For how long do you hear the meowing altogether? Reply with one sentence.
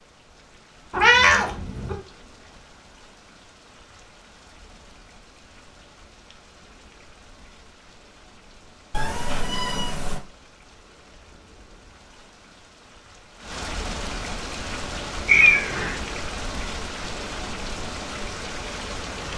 The meowing can be heard for 3 seconds in total.